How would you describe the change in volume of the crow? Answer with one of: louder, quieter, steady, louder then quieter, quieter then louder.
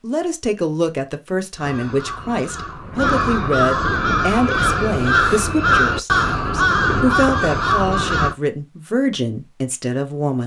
louder.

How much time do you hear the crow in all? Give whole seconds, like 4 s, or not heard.
7 s.